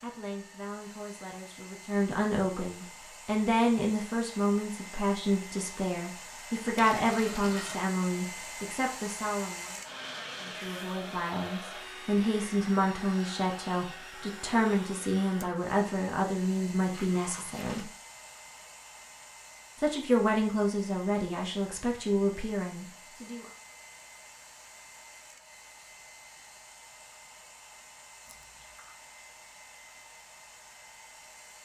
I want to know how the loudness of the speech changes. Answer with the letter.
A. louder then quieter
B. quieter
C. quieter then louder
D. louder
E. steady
E.